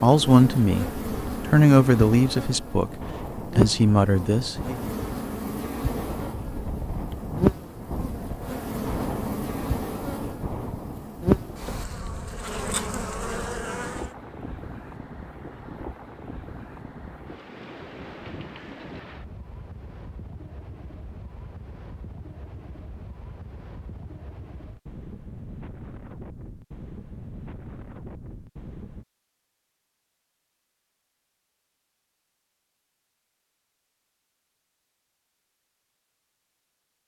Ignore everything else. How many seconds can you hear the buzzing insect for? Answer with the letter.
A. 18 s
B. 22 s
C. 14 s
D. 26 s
C.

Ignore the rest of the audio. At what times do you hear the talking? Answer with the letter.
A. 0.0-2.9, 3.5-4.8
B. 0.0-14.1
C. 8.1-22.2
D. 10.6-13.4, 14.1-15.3
A.